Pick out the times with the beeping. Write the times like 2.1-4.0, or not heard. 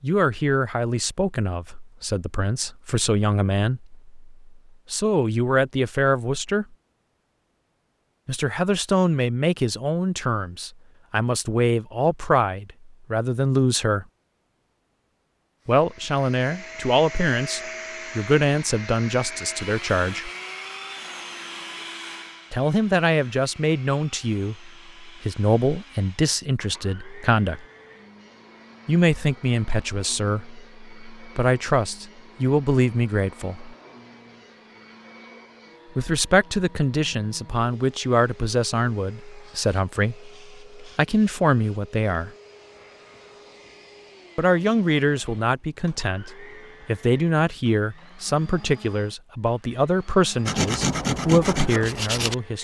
not heard.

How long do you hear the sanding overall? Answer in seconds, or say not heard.
2 s.